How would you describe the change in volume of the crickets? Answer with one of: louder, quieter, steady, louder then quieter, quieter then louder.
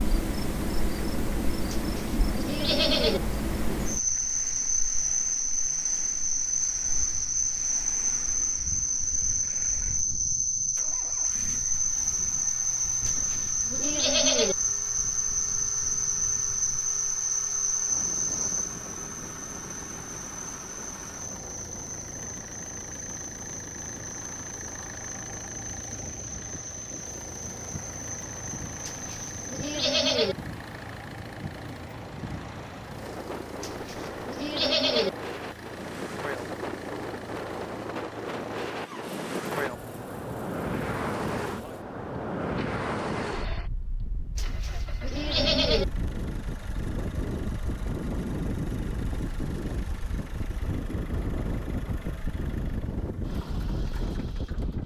quieter.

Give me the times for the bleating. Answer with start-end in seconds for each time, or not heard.
1.7-3.2, 13.1-14.6, 28.9-30.4, 33.6-35.1, 44.4-45.9.